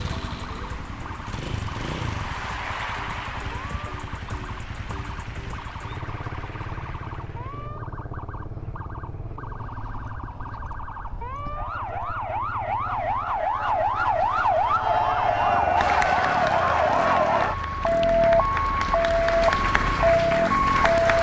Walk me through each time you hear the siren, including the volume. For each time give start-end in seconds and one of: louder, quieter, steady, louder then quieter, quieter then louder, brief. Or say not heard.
0.0-21.1 louder.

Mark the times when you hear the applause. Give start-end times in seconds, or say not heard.
0.0-7.7, 15.8-21.1.